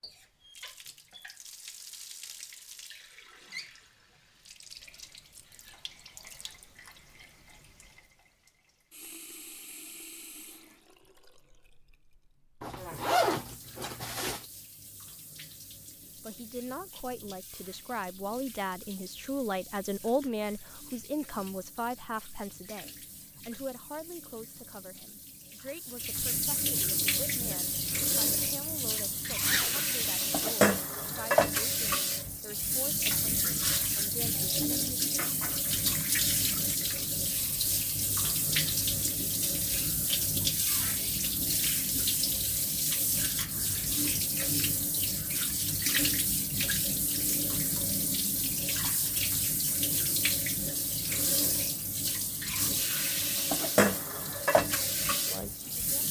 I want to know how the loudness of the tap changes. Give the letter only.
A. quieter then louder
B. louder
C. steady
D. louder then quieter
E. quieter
B.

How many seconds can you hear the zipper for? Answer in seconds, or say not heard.
2 s.